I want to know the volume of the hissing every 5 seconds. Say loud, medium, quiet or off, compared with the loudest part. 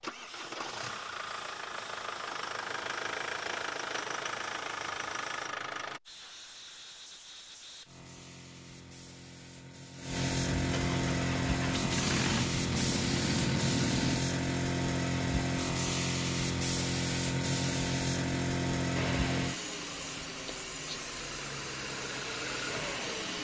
quiet, quiet, loud, loud, quiet.